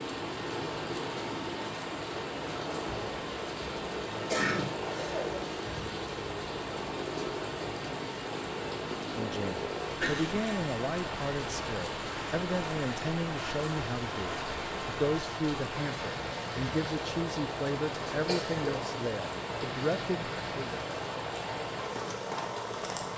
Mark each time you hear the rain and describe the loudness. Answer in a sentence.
The rain can be heard from 0.0 to 23.1 s, at a steady volume.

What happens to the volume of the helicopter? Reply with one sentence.
The loudness of the helicopter stays about the same.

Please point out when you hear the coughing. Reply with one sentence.
You can hear the coughing from 4.3 to 5.4 s, from 10.0 to 10.4 s and from 18.2 to 18.9 s.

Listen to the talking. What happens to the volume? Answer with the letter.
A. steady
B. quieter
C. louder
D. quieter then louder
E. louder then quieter
A.